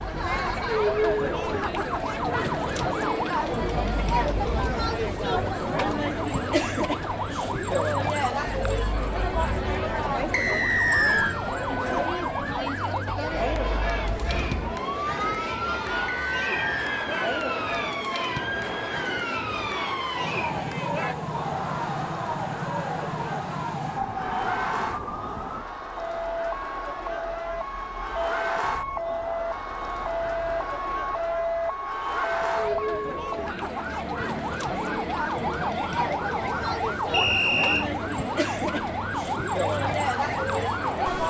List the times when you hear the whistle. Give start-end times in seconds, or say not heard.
10.3-11.3, 16.1-16.9, 37.1-37.9.